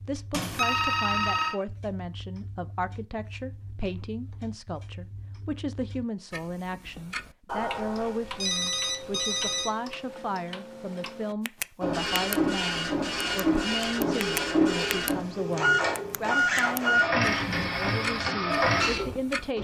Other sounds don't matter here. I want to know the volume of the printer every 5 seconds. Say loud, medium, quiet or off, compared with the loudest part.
off, off, loud, loud.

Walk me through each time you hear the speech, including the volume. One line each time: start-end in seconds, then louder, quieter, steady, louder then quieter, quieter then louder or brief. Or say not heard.
0.0-19.6 steady.